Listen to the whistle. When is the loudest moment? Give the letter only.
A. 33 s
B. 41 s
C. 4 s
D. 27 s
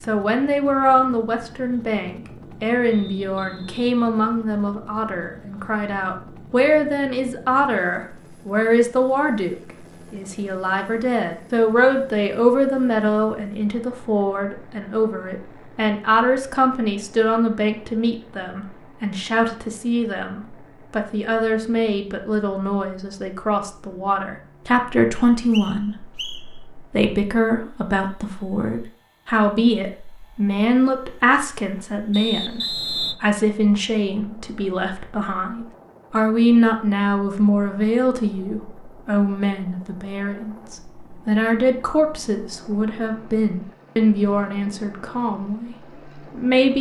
A.